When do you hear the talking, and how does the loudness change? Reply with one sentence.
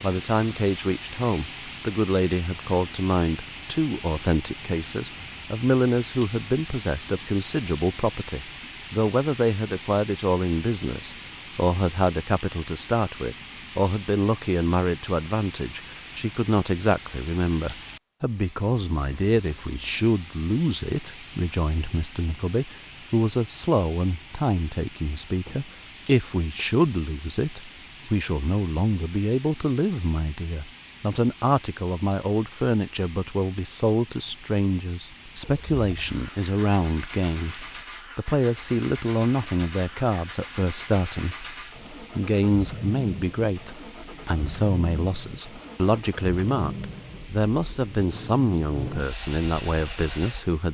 The talking can be heard from 0.0 to 50.6 s, at a steady volume.